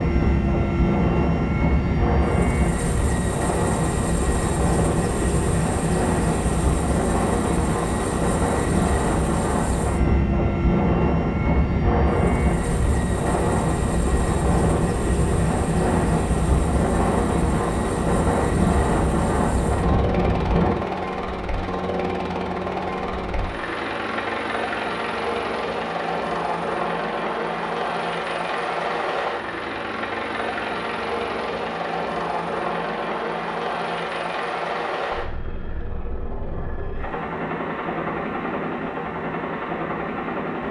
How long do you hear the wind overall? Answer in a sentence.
You can hear the wind for 21 seconds altogether.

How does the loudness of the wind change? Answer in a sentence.
The loudness of the wind stays about the same.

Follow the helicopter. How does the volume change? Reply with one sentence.
The loudness of the helicopter stays about the same.